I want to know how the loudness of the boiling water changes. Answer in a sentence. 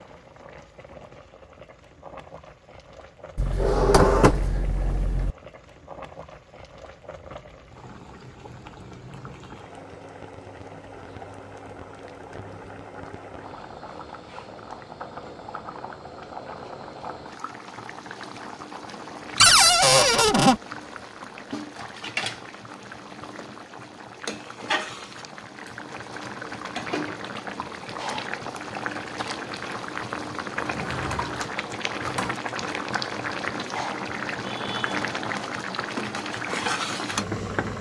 The loudness of the boiling water goes up.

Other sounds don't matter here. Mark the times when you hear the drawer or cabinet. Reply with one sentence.
The drawer or cabinet can be heard from 3.4 to 5.3 s, from 19.4 to 20.6 s and from 30.6 to 32.4 s.